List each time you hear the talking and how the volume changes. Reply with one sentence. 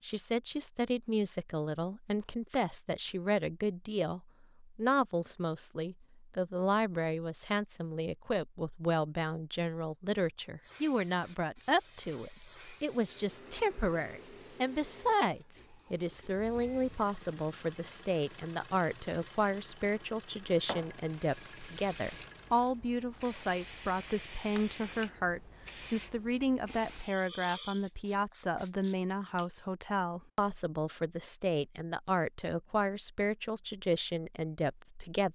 The talking can be heard from 0.0 to 35.3 s, at a steady volume.